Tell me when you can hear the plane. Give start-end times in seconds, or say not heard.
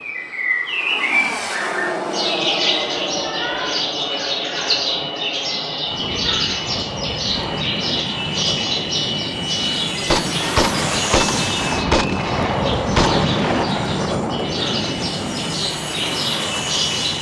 0.0-17.1.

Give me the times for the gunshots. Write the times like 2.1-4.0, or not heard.
10.1-13.9.